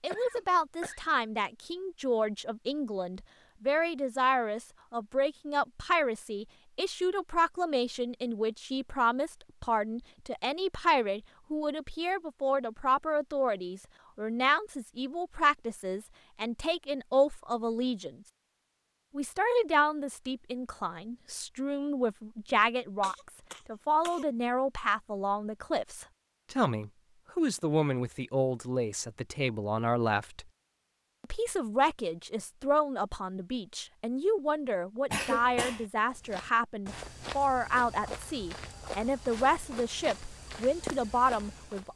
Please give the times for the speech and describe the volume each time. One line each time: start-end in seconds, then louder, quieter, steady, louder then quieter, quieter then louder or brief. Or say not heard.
0.0-18.1 steady
19.1-30.4 steady
31.2-41.9 steady.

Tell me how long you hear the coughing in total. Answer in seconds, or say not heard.
3 s.